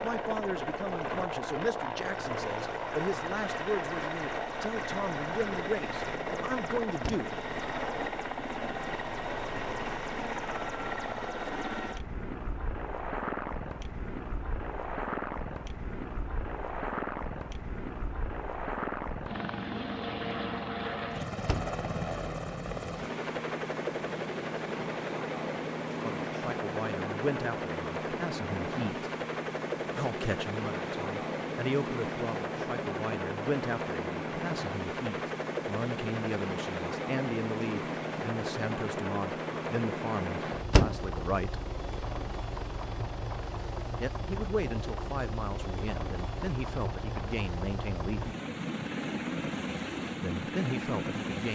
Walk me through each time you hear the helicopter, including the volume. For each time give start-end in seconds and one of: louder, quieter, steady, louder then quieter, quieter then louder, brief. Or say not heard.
0.0-51.5 steady.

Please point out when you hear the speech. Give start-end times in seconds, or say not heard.
0.0-7.3, 26.0-29.1, 29.9-41.6, 44.0-48.3, 50.2-51.5.